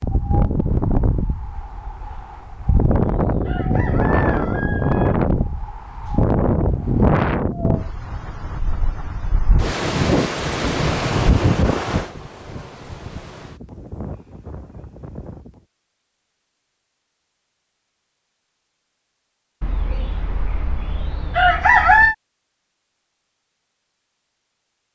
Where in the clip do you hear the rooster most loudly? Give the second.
22 s.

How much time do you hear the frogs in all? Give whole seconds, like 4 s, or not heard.
not heard.